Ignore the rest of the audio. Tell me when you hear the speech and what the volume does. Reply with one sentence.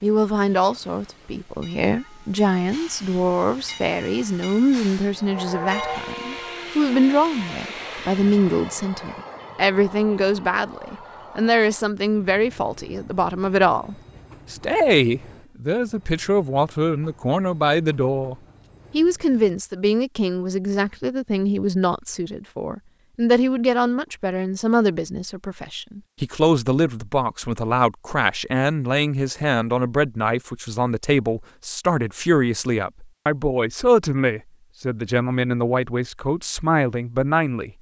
The speech can be heard from 0.0 to 37.7 s, at a steady volume.